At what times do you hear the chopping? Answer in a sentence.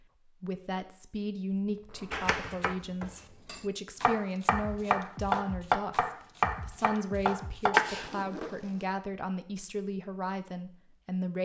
You can hear the chopping from 2.1 to 8.2 s.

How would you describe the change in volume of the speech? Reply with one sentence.
The loudness of the speech stays about the same.